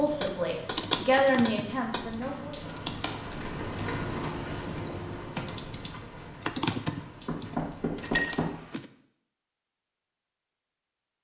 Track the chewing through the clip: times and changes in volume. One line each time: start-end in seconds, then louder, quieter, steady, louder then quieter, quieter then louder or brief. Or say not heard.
not heard.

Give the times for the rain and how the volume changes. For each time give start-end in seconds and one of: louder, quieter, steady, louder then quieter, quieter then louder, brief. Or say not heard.
0.0-8.2 louder then quieter.